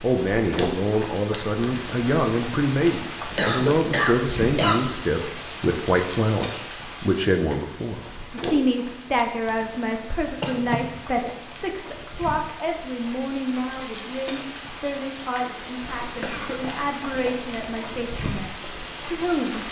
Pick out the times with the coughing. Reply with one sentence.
You can hear the coughing from 3.4 to 4.8 s, from 10.2 to 11.1 s and from 16.2 to 16.6 s.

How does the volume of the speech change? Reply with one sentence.
The volume of the speech goes down.